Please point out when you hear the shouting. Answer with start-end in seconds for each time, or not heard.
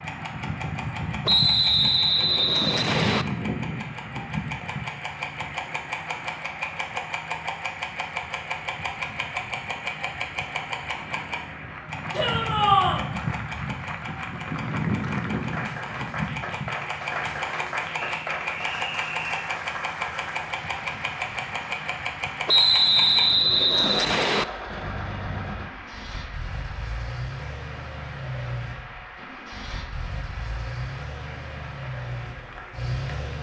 12.1-13.1.